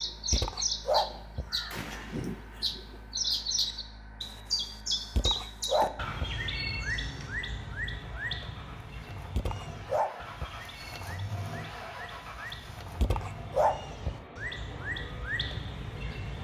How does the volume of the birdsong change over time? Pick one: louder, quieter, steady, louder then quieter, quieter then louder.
quieter then louder.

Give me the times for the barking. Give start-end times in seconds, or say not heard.
0.3-1.4, 5.2-6.3, 9.3-10.6, 13.0-14.2.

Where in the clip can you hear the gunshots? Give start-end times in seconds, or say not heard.
1.7-2.6.